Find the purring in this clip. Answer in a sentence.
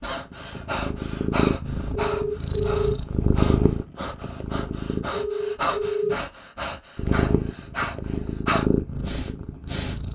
The purring can be heard from 0.0 to 5.0 s and from 7.0 to 10.0 s.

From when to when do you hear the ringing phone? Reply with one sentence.
The ringing phone can be heard from 1.9 to 3.0 s and from 5.1 to 6.2 s.